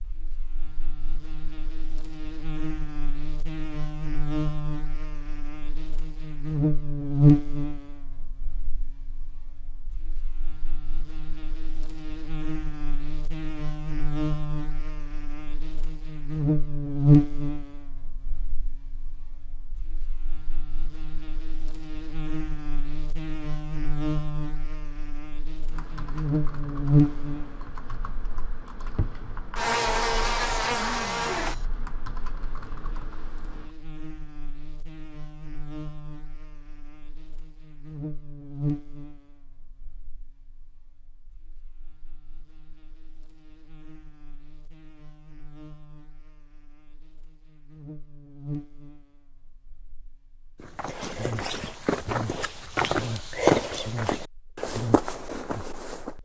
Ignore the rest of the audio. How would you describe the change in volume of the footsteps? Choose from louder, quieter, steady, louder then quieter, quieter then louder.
louder then quieter.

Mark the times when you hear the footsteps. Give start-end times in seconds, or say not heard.
50.6-56.1.